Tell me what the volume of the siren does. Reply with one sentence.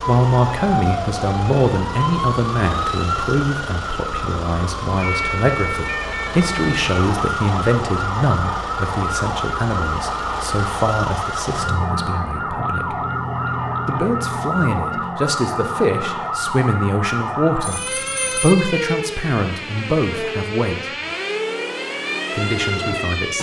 The loudness of the siren stays about the same.